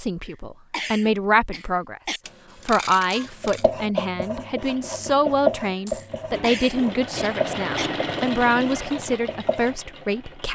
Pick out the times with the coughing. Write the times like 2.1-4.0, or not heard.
0.2-2.2, 6.0-7.9.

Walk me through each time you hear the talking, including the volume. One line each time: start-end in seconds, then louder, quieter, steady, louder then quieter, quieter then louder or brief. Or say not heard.
0.0-10.5 steady.